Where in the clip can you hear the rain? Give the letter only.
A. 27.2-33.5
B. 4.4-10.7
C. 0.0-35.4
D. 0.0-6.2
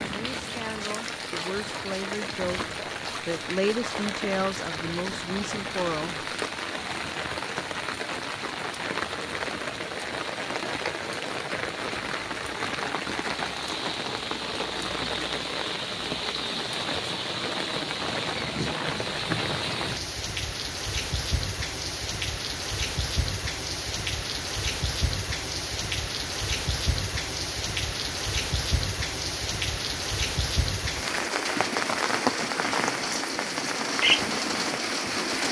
C.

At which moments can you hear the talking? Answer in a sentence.
The talking can be heard from 0.0 to 6.2 s.